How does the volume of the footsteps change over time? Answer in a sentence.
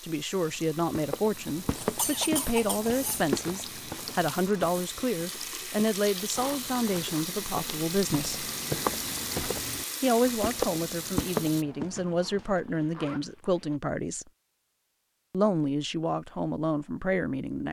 The volume of the footsteps goes down, then up.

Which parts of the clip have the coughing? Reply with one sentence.
You can hear the coughing from 1.8 to 3.2 s.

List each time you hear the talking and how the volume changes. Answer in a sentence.
You can hear the talking from 0.0 to 8.4 s, at a steady volume; from 10.0 to 14.2 s, at a steady volume; and briefly from 15.3 to 17.6 s.